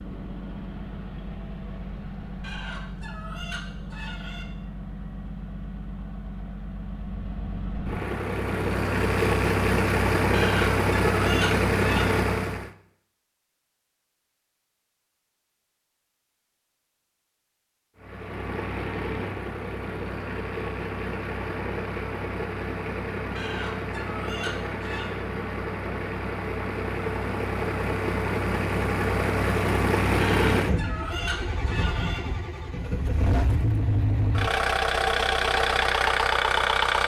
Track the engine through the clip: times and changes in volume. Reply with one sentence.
The engine can be heard from 0.0 to 12.7 s, getting louder; and from 17.9 to 37.0 s, getting louder.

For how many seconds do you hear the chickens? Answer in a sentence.
The chickens can be heard for 8 seconds in total.